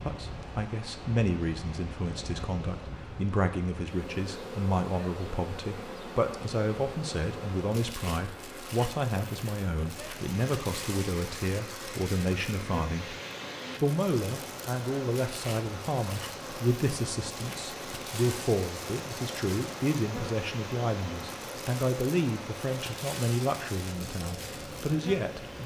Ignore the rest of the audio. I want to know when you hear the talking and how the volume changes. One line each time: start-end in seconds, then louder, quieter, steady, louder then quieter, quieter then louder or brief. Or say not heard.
0.0-13.2 steady
13.8-25.6 steady.